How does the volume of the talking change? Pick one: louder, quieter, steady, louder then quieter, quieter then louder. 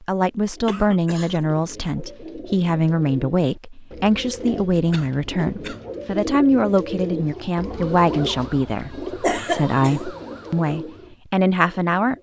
steady.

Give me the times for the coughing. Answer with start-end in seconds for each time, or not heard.
0.7-1.4, 4.9-5.8, 9.2-9.9.